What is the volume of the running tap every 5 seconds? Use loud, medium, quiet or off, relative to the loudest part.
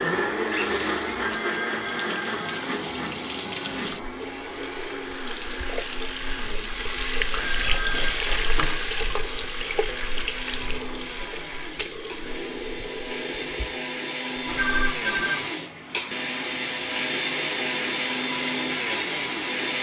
medium, loud, medium, medium.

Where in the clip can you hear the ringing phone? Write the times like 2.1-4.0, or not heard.
1.2-2.6, 7.3-8.8, 14.4-15.4.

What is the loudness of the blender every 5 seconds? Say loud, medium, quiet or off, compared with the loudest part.
loud, quiet, medium, loud.